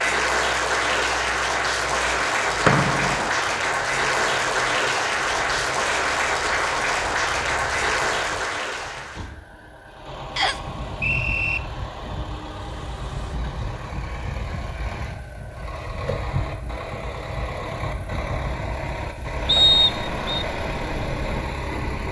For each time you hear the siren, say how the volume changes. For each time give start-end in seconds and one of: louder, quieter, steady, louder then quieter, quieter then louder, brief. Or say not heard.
not heard.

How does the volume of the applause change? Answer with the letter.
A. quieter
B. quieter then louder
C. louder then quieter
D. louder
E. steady
E.